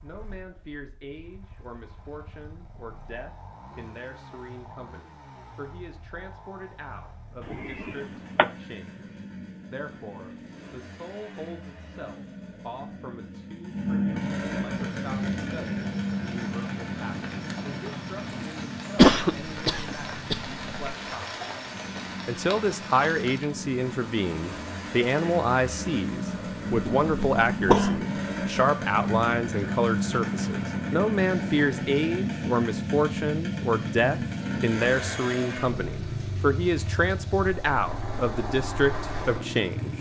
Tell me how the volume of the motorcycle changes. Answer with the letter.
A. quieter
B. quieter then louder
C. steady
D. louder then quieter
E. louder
E.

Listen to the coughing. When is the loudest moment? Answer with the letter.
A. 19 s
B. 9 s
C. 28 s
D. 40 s
A.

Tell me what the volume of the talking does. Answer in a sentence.
The volume of the talking goes up.